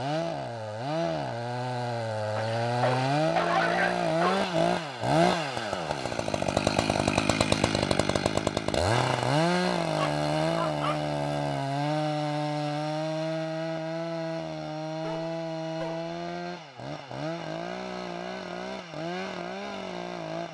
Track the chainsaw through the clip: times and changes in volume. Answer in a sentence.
You can hear the chainsaw from 0.0 to 20.4 s, getting quieter.